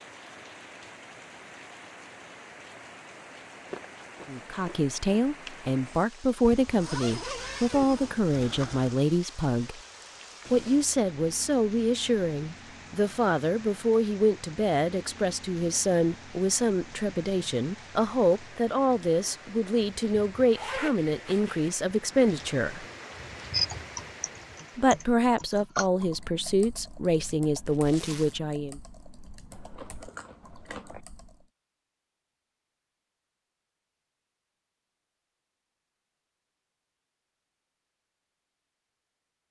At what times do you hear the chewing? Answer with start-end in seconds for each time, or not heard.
3.5-5.7, 29.5-31.0.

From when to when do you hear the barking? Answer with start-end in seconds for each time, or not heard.
not heard.